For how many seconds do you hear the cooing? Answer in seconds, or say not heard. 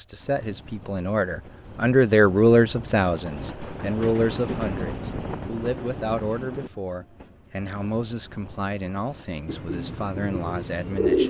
2 s.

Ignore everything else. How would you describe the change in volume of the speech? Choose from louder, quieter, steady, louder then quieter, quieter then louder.
quieter.